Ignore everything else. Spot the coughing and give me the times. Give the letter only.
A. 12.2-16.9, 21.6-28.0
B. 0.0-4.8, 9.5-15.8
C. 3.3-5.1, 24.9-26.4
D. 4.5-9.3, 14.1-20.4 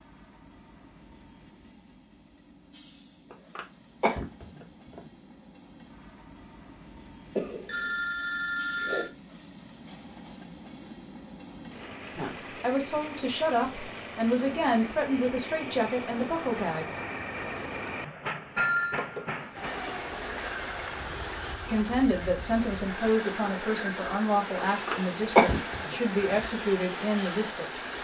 C.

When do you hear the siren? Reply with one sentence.
You can't hear the siren here.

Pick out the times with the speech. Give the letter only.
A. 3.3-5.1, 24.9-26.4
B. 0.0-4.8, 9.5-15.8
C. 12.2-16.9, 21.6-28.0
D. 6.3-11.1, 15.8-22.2
C.